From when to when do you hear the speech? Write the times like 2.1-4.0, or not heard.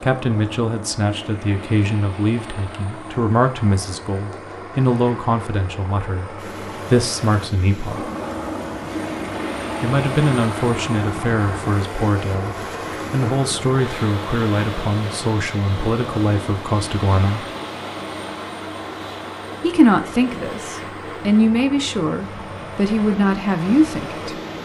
0.0-8.1, 9.8-17.5, 19.6-24.4.